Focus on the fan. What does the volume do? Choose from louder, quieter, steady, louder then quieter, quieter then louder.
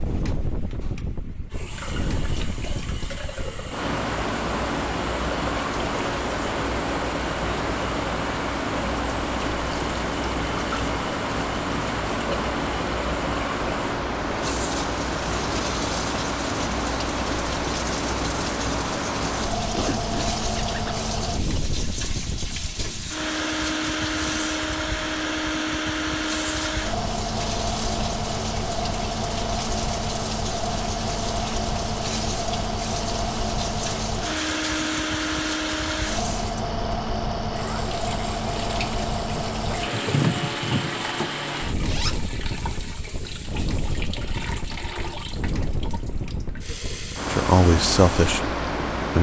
steady.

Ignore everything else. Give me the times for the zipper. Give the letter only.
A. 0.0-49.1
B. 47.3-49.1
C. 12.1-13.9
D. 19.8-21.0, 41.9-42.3
D.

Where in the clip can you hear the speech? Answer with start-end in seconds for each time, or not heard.
47.3-49.1.